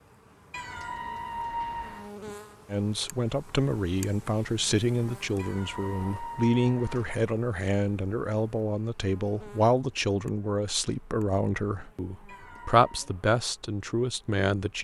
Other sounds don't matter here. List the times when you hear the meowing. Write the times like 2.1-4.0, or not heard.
0.5-2.1, 5.3-7.2, 12.2-13.1.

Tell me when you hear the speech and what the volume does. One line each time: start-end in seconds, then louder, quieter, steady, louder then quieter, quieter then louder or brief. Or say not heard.
2.7-14.7 steady.